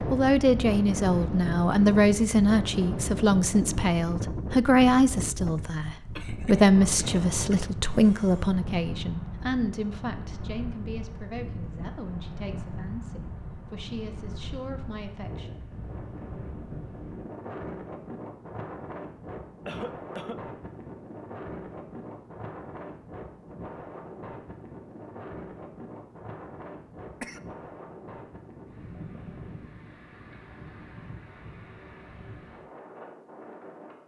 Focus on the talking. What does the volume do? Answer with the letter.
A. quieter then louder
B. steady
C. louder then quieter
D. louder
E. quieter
E.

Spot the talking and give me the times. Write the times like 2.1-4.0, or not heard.
0.1-15.6.